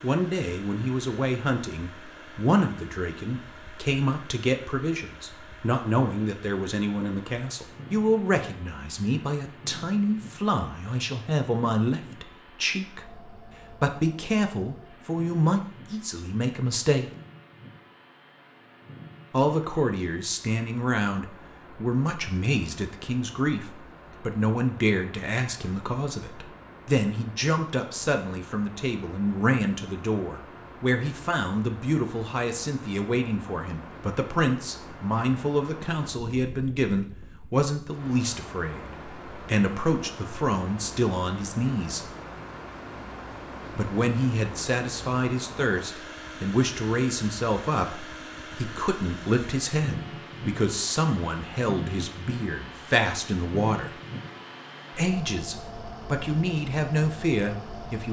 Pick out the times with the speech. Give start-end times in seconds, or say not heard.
0.0-17.1, 19.3-42.1, 43.8-54.0, 55.0-58.0.